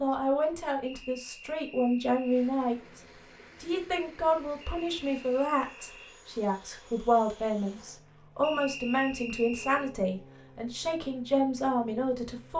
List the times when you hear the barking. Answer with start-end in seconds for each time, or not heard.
not heard.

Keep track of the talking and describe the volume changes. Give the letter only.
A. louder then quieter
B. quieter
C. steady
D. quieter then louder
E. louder
C.